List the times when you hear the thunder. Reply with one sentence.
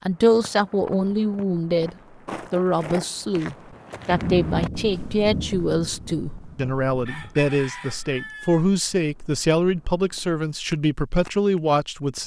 The thunder can be heard from 4.1 to 7.3 s.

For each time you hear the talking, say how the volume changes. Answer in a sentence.
You can hear the talking from 0.1 to 12.2 s, at a steady volume.